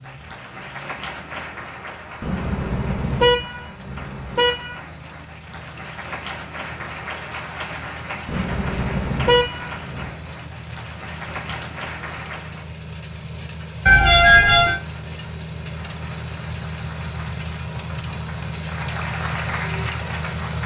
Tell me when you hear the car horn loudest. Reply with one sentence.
The loudest moment of the car horn is at 14 seconds.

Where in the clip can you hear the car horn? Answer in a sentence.
You can hear the car horn from 2.2 to 4.8 s, from 8.2 to 10.1 s and from 13.8 to 14.8 s.